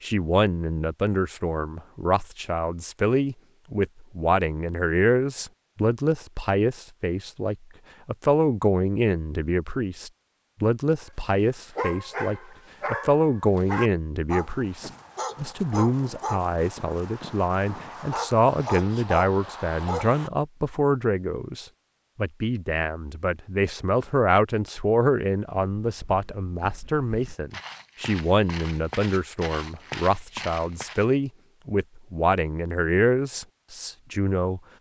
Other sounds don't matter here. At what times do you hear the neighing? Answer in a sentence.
The neighing can't be heard in this clip.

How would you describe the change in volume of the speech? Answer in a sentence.
The loudness of the speech stays about the same.